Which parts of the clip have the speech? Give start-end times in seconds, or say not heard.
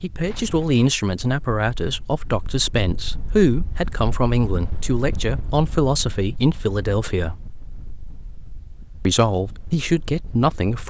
0.0-7.4, 9.1-10.8.